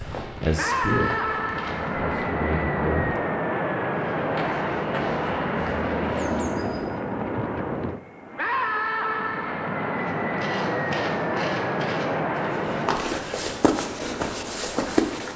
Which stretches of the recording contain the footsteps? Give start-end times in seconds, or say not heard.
0.0-2.3, 4.0-7.0, 9.9-15.3.